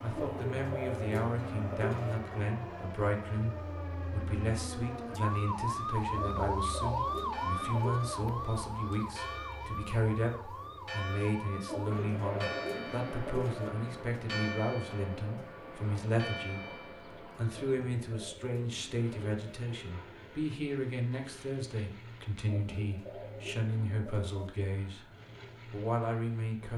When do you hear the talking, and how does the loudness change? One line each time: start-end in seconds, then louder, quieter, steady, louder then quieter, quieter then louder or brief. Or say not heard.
0.0-16.6 steady
17.4-25.1 steady
25.7-26.7 brief.